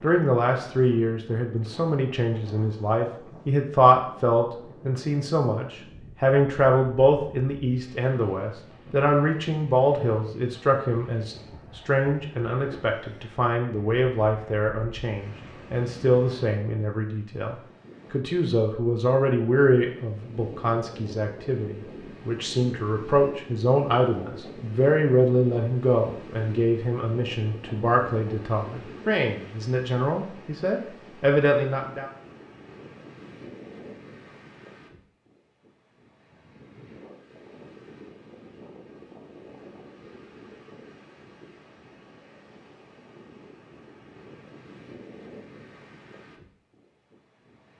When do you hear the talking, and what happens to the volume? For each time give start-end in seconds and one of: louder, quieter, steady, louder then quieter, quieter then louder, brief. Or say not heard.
0.0-32.1 steady.